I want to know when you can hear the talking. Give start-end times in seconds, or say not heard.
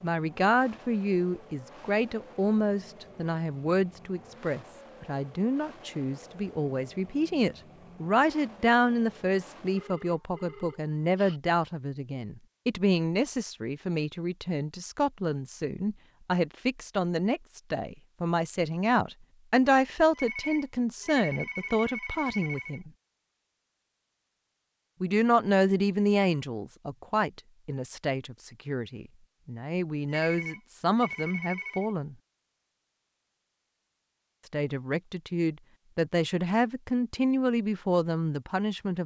0.0-22.9, 25.0-32.1, 34.5-39.0.